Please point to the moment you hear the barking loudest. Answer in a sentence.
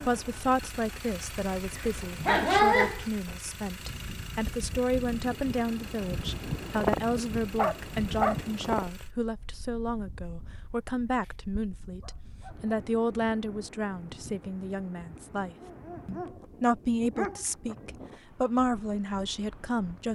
The volume of the barking peaks at 3 seconds.